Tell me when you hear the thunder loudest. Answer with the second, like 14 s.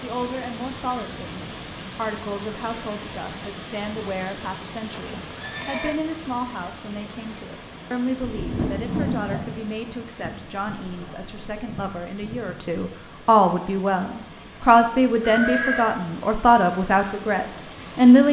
9 s.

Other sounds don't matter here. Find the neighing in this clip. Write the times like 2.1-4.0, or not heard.
5.0-6.0, 15.2-15.9.